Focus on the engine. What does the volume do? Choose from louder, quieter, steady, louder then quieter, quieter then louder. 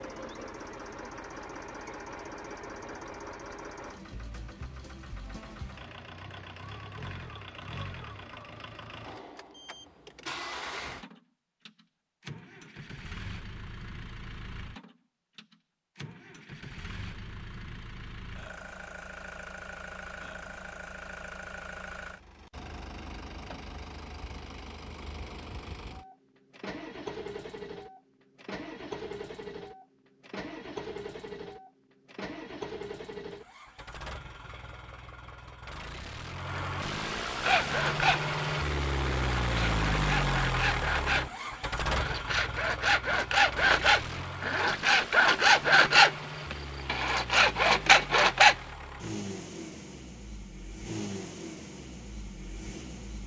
louder then quieter.